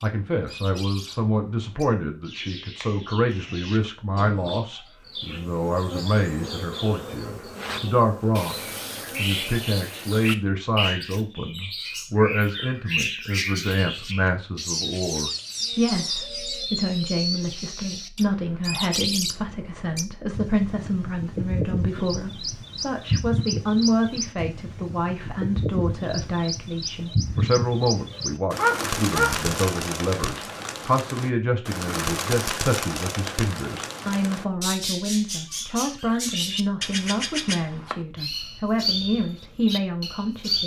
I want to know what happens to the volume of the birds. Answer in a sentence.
The loudness of the birds goes up.